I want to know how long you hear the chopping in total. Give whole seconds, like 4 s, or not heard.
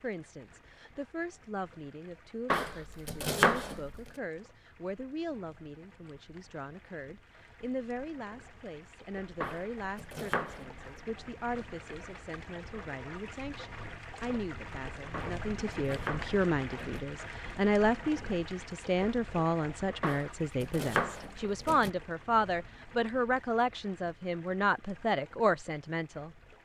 7 s.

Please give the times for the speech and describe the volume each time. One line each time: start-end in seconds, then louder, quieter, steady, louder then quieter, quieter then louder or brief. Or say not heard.
0.0-26.6 louder.